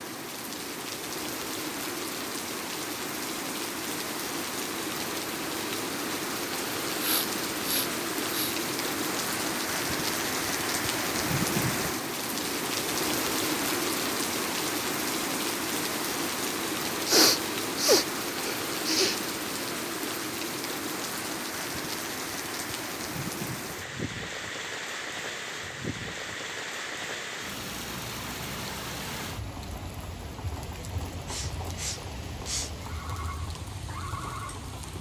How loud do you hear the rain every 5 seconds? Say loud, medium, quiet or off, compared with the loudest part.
medium, loud, loud, loud, medium, medium, medium.